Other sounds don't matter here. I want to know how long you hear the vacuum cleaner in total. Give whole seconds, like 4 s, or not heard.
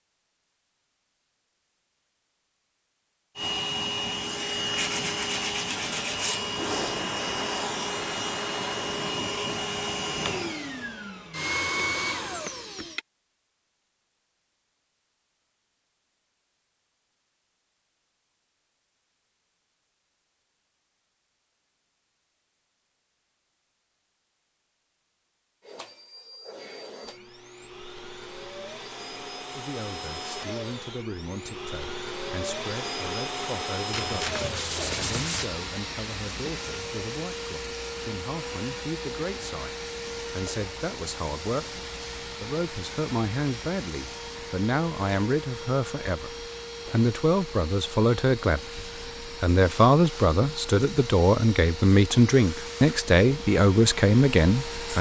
39 s.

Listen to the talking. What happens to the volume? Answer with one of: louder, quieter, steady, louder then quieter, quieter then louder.
louder.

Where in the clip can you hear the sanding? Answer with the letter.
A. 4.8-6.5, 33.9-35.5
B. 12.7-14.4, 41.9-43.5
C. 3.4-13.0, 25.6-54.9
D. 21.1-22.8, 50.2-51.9
A.